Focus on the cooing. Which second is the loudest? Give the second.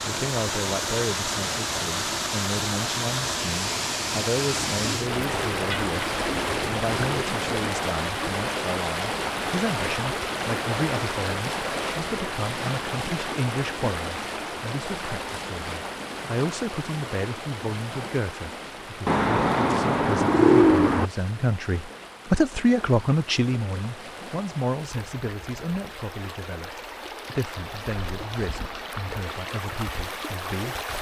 21 s.